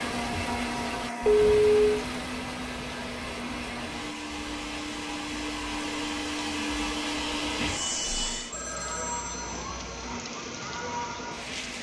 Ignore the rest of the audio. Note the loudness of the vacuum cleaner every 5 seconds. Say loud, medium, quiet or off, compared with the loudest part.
loud, loud, off.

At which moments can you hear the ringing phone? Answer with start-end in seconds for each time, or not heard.
1.2-2.0, 8.5-10.2.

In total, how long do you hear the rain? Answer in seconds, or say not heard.
12 s.